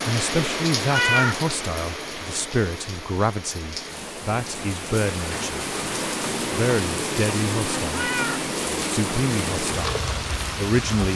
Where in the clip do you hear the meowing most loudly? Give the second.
1 s.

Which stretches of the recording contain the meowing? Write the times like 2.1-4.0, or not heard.
0.8-1.4, 7.9-8.4.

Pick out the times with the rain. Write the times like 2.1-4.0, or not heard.
0.0-11.1.